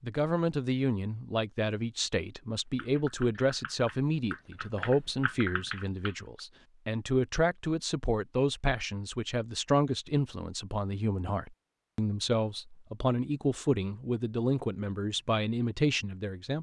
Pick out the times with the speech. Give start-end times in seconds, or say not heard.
0.0-16.5.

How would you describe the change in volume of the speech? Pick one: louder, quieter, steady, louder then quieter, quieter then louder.
steady.